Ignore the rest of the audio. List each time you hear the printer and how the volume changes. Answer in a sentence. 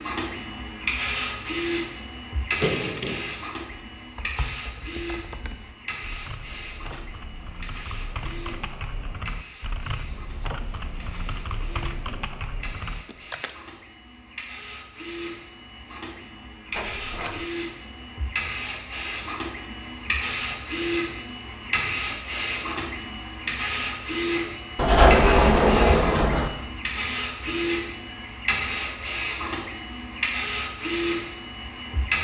The printer can be heard from 0.0 to 32.1 s, getting quieter then louder.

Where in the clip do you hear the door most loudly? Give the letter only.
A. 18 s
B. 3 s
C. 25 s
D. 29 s
C.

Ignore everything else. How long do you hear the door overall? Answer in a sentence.
You can hear the door for 3 seconds altogether.